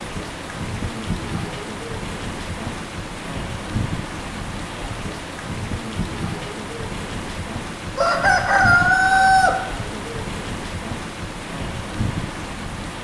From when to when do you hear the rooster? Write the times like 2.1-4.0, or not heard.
8.0-9.6.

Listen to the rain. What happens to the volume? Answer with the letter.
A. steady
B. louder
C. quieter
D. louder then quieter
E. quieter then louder
A.